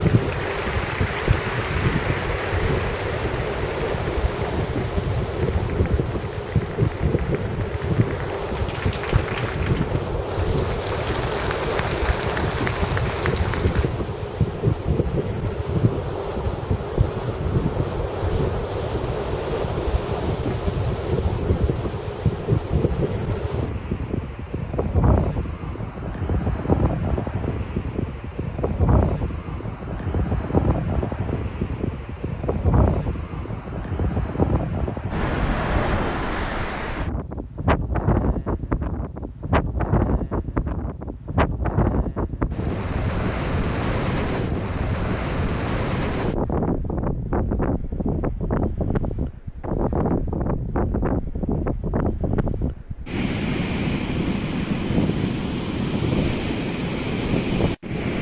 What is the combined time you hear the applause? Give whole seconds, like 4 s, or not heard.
14 s.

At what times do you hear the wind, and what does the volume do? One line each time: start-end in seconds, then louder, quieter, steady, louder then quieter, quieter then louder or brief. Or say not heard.
0.0-58.1 steady.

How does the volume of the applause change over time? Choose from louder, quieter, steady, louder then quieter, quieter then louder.
quieter then louder.